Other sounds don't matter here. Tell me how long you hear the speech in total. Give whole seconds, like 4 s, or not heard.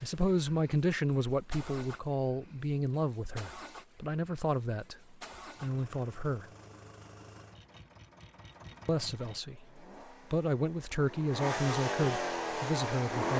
11 s.